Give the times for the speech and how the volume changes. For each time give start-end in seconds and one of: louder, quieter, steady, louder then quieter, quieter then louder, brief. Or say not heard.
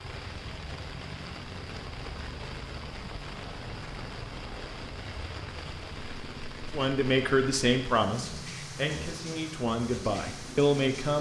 6.7-11.1 quieter then louder.